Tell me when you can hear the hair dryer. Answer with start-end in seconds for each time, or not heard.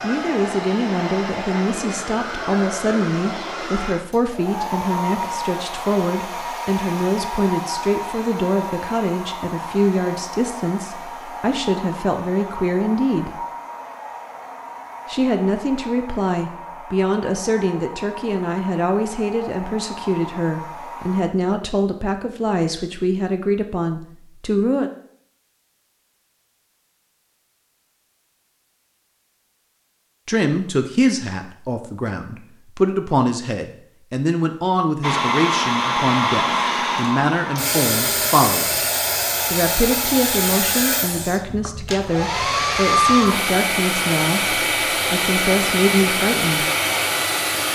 0.0-21.2, 35.0-47.6.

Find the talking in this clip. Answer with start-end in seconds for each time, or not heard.
0.0-13.4, 15.1-24.9, 30.2-38.8, 39.5-46.7.